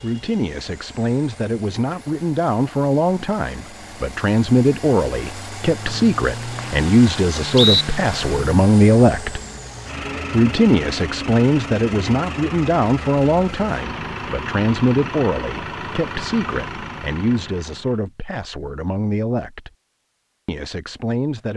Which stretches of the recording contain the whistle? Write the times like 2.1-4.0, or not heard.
5.8-7.8.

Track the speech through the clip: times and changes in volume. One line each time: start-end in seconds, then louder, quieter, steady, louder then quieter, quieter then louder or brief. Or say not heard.
0.0-9.4 louder
10.3-19.7 quieter
20.4-21.5 brief.